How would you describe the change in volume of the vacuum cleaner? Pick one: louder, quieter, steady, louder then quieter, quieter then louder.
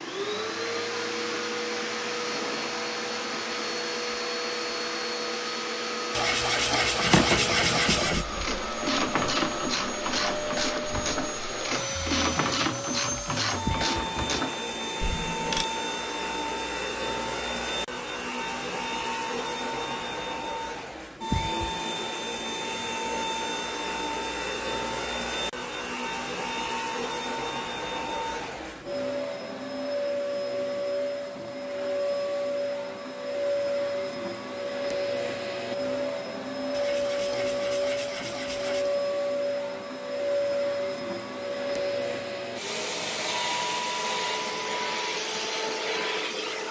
steady.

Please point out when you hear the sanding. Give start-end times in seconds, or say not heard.
6.1-8.3, 36.7-39.0.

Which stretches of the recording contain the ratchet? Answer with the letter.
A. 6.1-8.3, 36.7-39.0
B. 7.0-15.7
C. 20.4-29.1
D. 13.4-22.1
B.